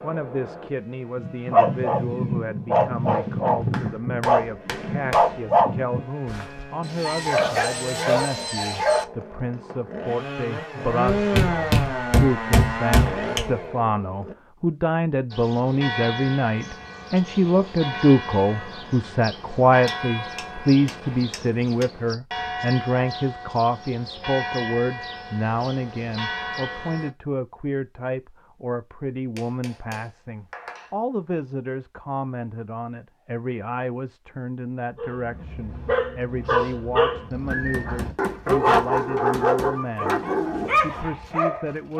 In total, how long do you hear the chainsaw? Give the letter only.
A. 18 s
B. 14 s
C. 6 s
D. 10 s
B.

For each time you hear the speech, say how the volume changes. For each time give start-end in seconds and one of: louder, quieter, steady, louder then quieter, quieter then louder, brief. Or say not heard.
0.0-41.9 louder then quieter.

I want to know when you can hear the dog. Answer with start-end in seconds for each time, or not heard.
1.1-9.1, 35.0-41.9.